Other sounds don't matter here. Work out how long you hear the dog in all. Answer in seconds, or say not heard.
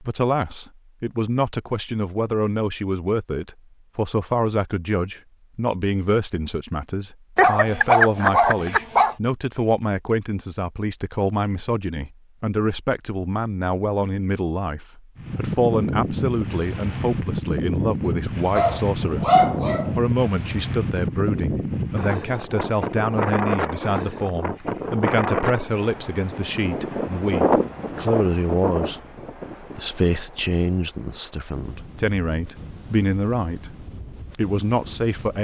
3 s.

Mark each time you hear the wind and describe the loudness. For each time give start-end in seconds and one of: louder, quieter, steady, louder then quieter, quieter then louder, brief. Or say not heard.
15.2-35.3 quieter.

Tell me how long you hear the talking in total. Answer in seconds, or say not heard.
35 s.